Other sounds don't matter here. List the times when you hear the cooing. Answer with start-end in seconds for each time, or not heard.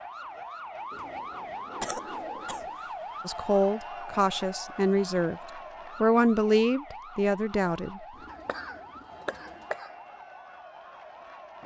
0.9-2.8, 8.1-9.8.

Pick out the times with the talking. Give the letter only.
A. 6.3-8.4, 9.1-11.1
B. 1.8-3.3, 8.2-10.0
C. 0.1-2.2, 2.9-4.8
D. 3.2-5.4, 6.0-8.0
D.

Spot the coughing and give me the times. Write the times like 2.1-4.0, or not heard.
1.8-3.3, 8.2-10.0.